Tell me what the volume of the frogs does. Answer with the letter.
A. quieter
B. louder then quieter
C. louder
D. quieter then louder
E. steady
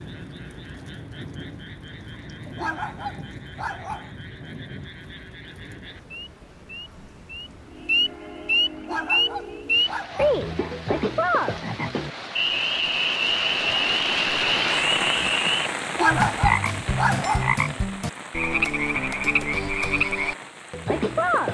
C.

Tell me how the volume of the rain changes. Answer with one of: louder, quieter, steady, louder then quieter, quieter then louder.
louder then quieter.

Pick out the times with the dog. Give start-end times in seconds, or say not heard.
2.5-4.1, 8.8-10.4, 15.9-17.5.